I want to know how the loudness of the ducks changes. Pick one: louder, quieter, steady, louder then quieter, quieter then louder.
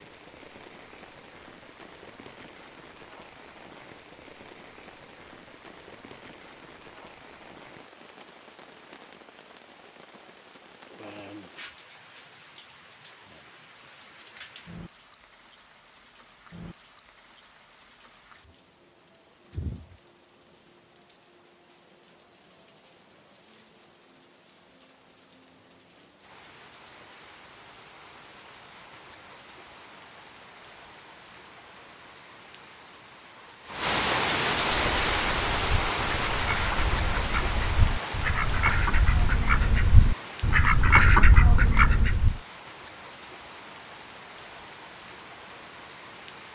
louder.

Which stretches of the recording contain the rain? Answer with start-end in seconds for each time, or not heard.
0.0-46.4.